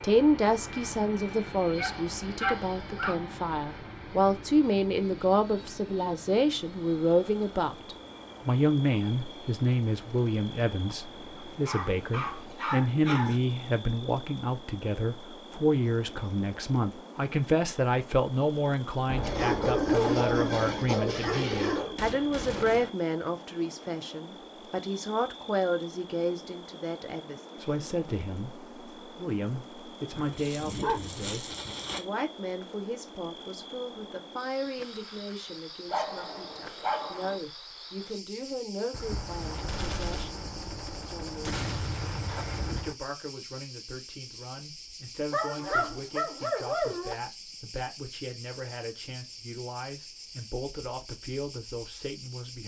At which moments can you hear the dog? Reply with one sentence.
The dog can be heard from 1.8 to 3.1 s, from 11.3 to 13.3 s, from 19.2 to 21.9 s, from 30.1 to 32.0 s, from 35.9 to 37.4 s and from 45.3 to 47.1 s.